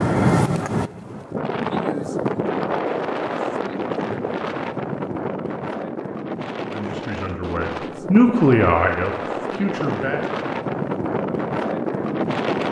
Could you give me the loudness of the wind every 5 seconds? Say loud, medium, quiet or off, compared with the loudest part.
loud, medium, loud.